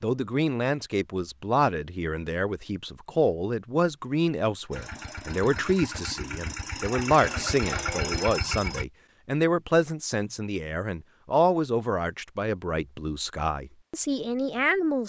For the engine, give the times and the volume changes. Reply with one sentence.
The engine can be heard from 4.7 to 8.8 s, getting louder.